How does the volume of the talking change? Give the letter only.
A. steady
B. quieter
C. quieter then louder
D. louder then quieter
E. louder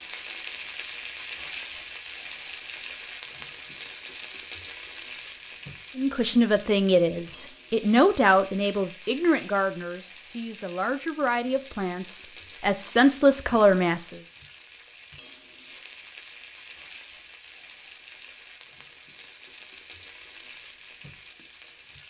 C.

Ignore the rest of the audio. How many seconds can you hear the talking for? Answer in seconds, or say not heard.
8 s.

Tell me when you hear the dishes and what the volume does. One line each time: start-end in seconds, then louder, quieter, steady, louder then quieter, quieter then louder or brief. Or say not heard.
not heard.